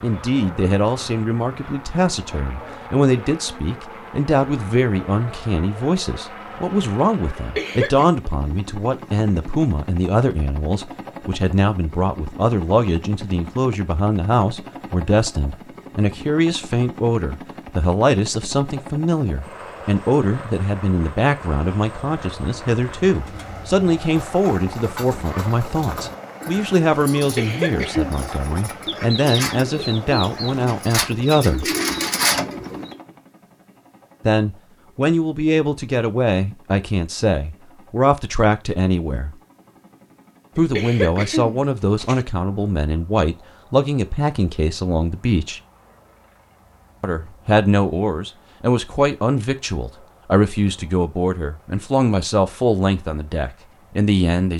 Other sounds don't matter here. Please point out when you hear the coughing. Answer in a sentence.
You can hear the coughing from 7.3 to 8.1 s, from 27.1 to 28.1 s and from 40.5 to 42.2 s.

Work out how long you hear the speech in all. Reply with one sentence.
You can hear the speech for 49 seconds altogether.